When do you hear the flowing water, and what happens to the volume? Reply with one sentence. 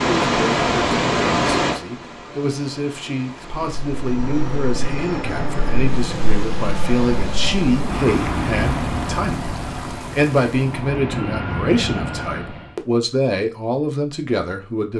The flowing water can be heard from 0.0 to 10.9 s, getting quieter.